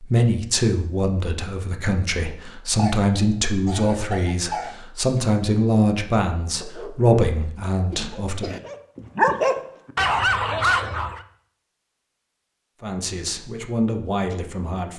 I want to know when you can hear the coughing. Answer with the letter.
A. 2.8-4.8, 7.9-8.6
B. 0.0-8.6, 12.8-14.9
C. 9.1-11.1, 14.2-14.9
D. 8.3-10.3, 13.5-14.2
A.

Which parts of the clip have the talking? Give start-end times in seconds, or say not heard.
0.0-8.6, 12.8-14.9.